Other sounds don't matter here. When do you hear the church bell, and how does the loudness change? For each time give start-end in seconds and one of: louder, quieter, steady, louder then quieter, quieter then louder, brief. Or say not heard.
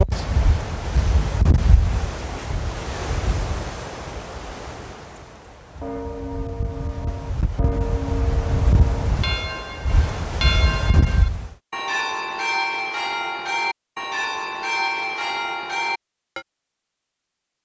5.8-16.4 louder.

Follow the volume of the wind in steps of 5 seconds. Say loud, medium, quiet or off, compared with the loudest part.
loud, loud, loud, off.